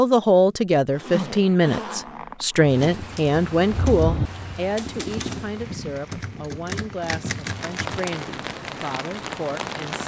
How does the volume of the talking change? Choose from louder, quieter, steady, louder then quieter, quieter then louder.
quieter.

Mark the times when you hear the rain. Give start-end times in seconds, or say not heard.
2.6-10.0.